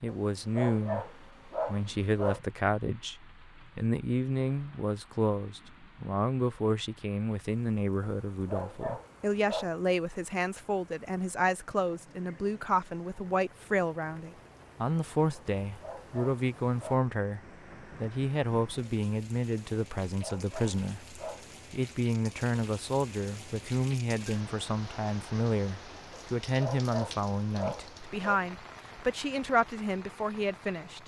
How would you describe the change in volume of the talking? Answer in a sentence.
The volume of the talking stays about the same.